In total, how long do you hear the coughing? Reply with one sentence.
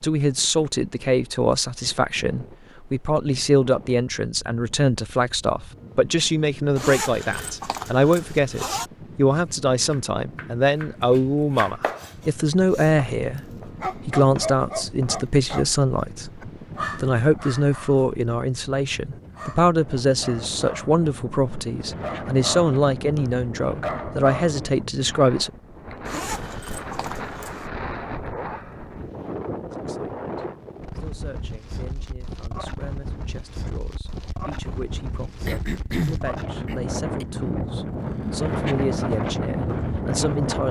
You can hear the coughing for 2 seconds altogether.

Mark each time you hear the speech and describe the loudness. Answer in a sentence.
You can hear the speech from 0.0 to 25.5 s, at a steady volume; and from 29.7 to 40.6 s, getting louder.